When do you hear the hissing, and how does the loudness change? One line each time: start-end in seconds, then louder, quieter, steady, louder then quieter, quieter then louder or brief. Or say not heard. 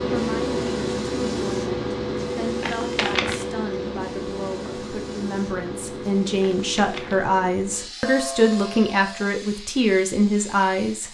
0.0-11.0 quieter.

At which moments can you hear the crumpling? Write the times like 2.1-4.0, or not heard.
2.6-3.5, 6.5-7.2.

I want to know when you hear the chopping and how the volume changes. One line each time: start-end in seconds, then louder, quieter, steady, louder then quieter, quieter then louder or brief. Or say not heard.
not heard.